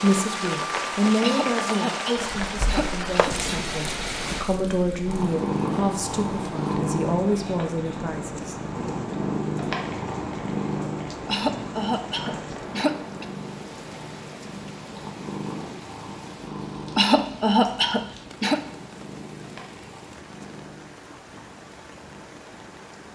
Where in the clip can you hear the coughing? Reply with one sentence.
You can hear the coughing from 1.2 to 3.6 s, from 11.2 to 13.2 s and from 16.9 to 18.6 s.